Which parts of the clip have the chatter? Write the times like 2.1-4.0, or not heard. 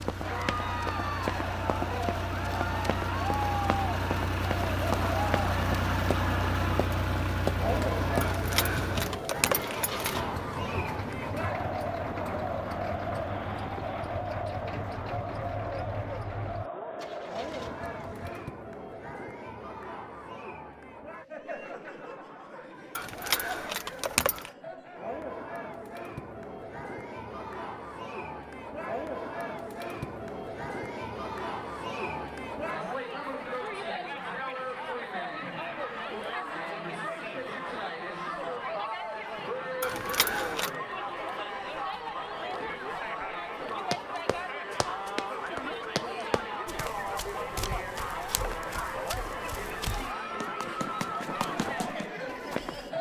0.1-52.9.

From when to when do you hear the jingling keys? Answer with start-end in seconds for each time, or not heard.
8.2-10.2, 22.9-24.5, 39.8-40.7.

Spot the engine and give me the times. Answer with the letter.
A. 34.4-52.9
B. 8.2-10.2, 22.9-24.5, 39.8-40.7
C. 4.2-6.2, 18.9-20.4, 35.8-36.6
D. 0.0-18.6
D.